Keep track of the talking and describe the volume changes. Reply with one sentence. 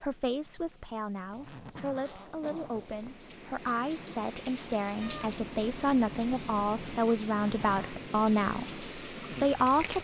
The loudness of the talking goes up.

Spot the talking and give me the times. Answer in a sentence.
The talking can be heard from 0.0 to 9.9 s.